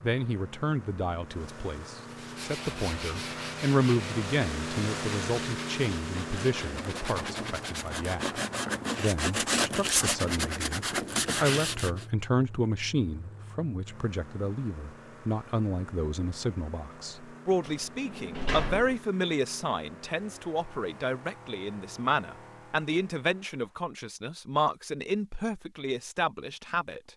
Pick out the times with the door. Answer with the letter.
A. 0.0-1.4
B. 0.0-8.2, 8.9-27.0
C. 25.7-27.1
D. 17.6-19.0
D.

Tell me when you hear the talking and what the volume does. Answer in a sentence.
You can hear the talking from 0.0 to 8.2 s, getting louder then quieter; and from 8.9 to 27.0 s, at a steady volume.